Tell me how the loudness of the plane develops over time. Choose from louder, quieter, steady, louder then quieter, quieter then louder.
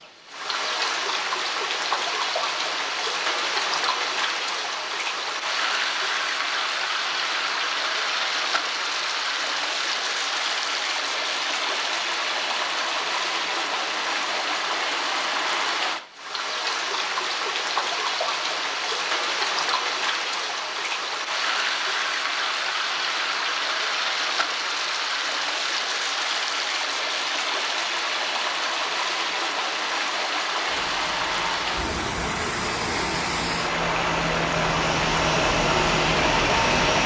louder.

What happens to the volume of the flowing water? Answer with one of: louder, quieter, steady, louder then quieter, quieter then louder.
steady.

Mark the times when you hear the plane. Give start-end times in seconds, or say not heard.
30.6-37.0.